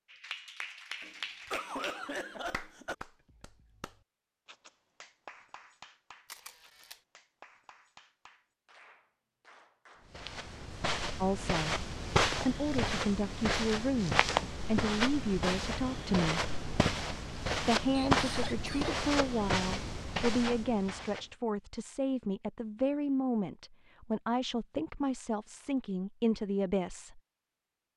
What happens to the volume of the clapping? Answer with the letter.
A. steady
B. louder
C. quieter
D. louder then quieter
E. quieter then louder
C.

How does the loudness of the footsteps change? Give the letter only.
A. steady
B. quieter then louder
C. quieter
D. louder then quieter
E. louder
A.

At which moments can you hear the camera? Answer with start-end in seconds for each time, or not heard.
6.2-7.0.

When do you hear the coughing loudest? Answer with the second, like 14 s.
2 s.